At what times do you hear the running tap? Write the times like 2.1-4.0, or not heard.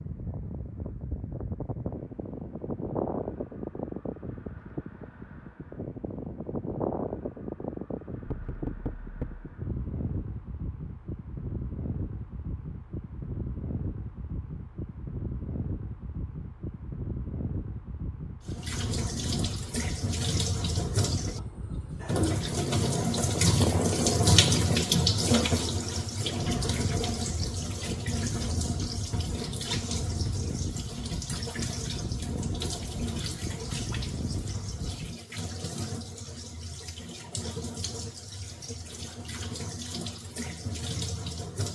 18.4-41.7.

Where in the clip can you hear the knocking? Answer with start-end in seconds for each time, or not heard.
8.2-9.4.